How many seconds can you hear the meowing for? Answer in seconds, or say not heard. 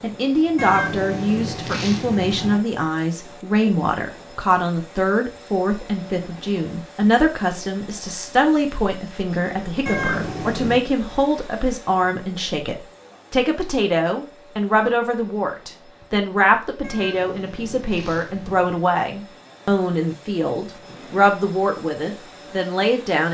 5 s.